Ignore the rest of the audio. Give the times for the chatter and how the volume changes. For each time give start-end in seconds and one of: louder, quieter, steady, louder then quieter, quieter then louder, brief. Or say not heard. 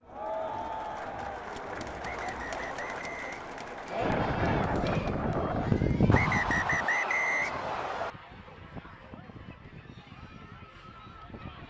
0.0-11.6 quieter.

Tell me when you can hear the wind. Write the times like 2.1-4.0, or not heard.
4.0-11.6.